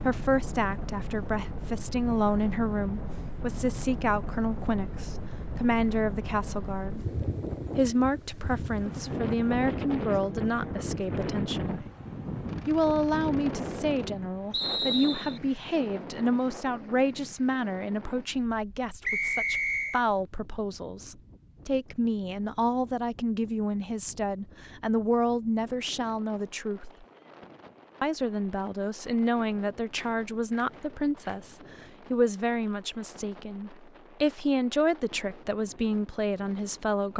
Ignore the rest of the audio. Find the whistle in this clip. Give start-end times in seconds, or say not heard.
14.5-15.4, 19.0-20.0.